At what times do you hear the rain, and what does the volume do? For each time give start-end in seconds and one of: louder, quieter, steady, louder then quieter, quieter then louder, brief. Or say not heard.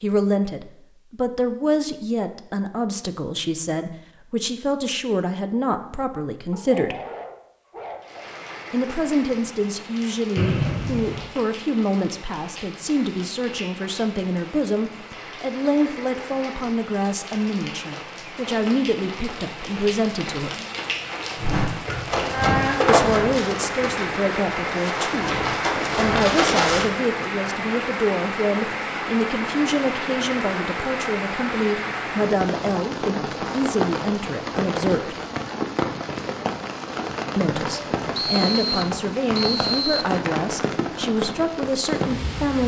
8.0-42.6 louder.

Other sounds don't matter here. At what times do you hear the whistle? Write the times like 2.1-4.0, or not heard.
10.3-11.2, 38.1-40.1.